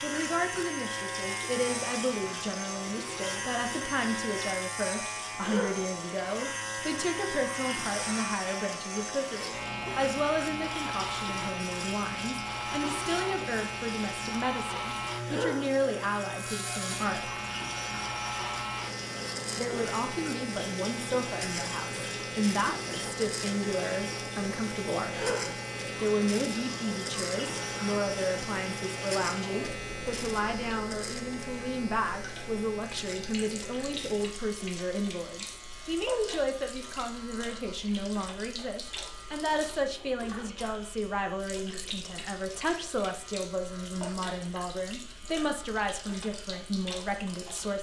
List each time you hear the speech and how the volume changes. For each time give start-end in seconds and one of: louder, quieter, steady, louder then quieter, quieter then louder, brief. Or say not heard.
0.0-17.4 steady
19.6-47.7 steady.